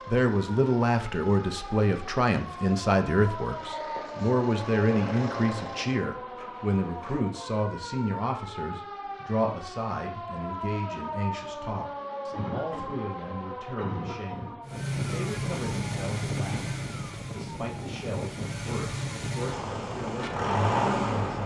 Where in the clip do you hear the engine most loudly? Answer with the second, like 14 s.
21 s.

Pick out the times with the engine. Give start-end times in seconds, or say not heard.
0.0-7.3, 14.7-21.4.